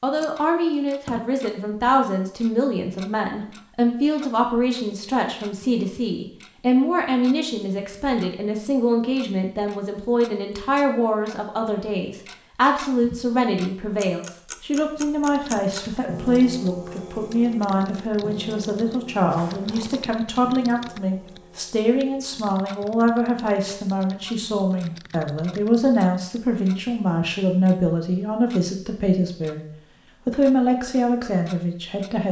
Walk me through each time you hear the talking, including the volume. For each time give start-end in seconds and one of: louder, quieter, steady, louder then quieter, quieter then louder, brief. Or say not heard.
0.0-29.6 steady
30.2-32.2 brief.